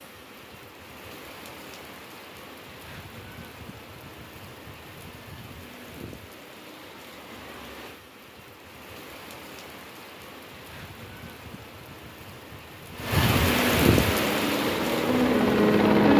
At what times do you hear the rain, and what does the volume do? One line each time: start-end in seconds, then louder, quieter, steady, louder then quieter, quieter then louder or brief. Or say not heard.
0.0-16.1 louder.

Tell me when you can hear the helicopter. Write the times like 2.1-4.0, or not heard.
14.1-16.1.